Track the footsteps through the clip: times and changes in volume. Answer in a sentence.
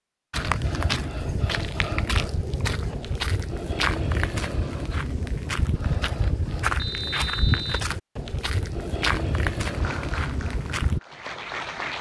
You can hear the footsteps from 0.3 to 11.0 s, at a steady volume.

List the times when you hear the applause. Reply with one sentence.
You can hear the applause from 9.7 to 11.9 s.